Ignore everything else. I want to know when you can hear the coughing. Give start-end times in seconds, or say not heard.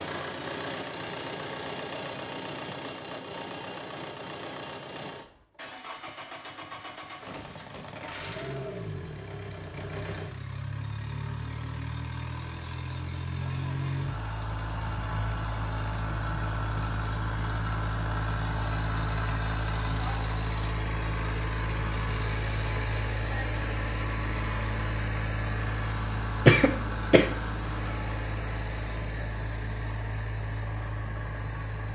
26.4-27.4.